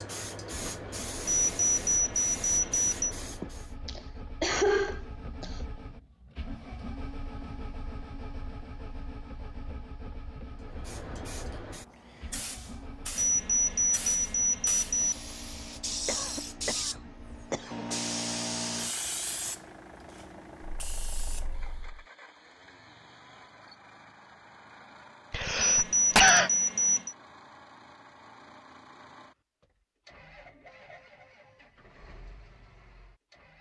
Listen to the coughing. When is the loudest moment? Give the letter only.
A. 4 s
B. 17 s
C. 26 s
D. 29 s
C.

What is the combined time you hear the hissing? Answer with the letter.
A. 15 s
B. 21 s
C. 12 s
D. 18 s
A.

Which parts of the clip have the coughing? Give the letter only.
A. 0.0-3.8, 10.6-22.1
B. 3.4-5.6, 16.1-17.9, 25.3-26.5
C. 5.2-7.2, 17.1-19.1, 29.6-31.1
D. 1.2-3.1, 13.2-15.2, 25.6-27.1
B.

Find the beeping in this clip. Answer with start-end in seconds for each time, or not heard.
1.2-3.1, 13.2-15.2, 25.6-27.1.